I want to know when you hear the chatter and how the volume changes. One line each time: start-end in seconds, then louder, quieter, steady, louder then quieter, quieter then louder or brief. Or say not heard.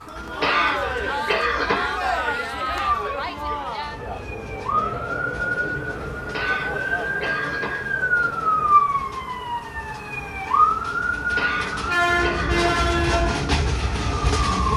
0.1-8.8 quieter.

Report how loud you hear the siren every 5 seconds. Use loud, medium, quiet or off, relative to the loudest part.
medium, loud, loud.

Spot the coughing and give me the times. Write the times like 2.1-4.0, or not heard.
0.4-1.9, 6.3-7.9, 11.3-12.8.